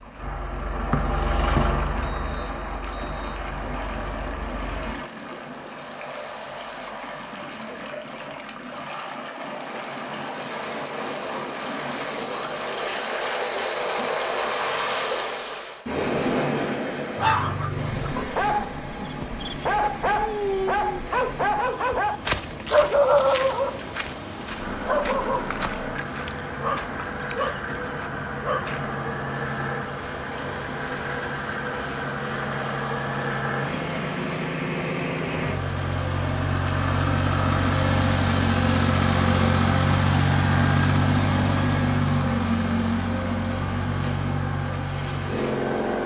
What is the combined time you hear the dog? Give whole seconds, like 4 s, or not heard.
12 s.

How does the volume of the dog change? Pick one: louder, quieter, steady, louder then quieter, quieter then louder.
louder then quieter.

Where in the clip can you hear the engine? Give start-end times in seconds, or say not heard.
0.0-5.0, 24.6-46.0.